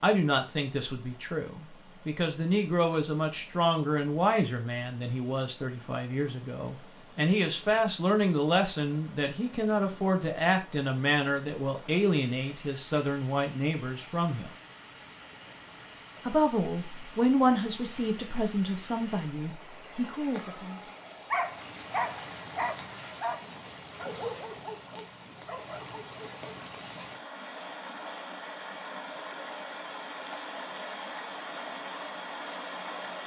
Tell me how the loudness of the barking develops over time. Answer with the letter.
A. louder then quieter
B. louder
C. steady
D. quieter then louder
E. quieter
E.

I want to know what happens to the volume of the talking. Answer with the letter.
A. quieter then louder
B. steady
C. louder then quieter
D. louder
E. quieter
B.